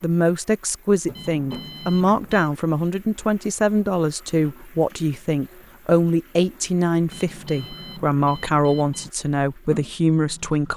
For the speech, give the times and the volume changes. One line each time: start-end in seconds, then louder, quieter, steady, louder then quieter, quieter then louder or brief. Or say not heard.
0.0-10.7 steady.